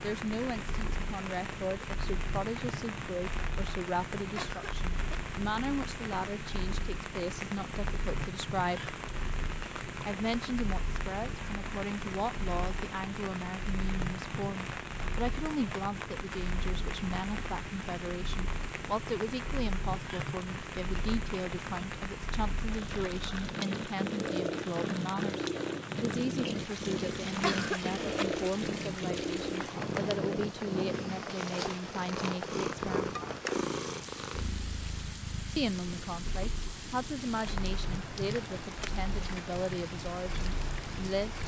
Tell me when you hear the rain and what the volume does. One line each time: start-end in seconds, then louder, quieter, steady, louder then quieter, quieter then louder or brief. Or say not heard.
0.0-41.4 steady.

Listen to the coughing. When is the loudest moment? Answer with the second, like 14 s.
28 s.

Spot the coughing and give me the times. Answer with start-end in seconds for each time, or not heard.
4.3-5.2, 27.4-28.2.